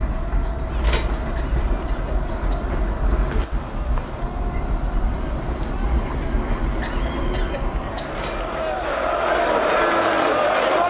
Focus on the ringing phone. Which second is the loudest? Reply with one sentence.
The volume of the ringing phone peaks at 1 second.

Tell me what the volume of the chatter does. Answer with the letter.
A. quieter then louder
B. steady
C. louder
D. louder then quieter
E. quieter
C.